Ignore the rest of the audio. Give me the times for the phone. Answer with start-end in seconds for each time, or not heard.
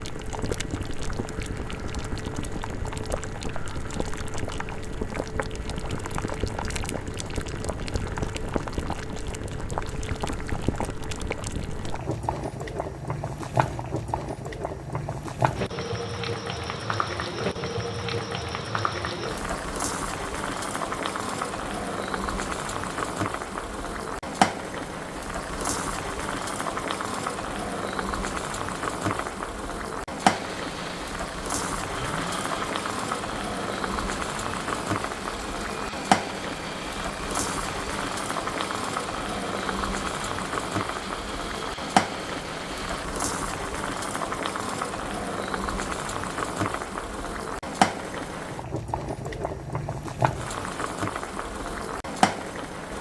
not heard.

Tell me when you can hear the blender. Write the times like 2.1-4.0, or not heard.
30.2-43.0.